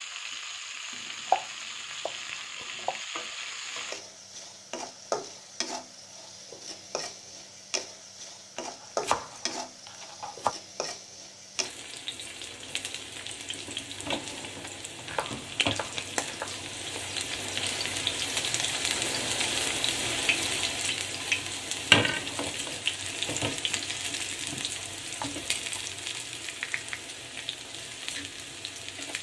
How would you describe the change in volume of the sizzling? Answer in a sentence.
The volume of the sizzling goes up, then down.